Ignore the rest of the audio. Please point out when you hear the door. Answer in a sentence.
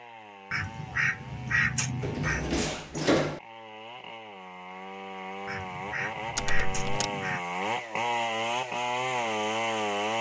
The door can be heard from 2.0 to 3.4 s and from 6.3 to 7.0 s.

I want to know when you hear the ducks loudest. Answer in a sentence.
The loudest moment of the ducks is at 2 seconds.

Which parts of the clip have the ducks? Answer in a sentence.
You can hear the ducks from 0.5 to 2.5 s and from 5.5 to 7.4 s.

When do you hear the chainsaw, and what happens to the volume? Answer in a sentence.
The chainsaw can be heard from 0.0 to 10.1 s, getting louder.